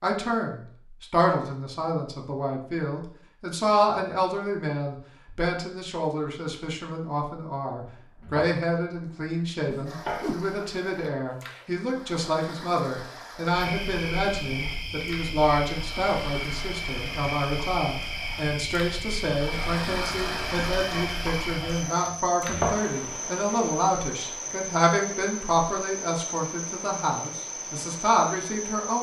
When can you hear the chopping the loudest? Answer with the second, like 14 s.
23 s.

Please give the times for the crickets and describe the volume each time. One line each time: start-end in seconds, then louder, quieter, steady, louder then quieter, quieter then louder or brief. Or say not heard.
13.5-28.9 steady.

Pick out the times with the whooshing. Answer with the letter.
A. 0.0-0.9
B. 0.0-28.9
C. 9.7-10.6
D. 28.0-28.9
C.